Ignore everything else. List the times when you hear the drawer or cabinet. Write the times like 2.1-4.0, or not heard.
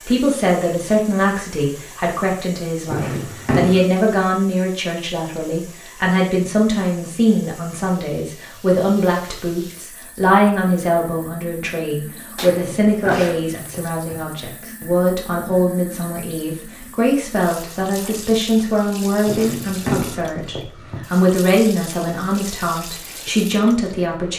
2.9-3.8, 12.4-14.2, 19.2-21.0.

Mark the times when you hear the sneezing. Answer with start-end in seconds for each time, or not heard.
12.3-13.4.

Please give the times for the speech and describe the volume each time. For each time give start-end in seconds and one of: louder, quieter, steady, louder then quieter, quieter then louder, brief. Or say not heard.
0.1-24.3 steady.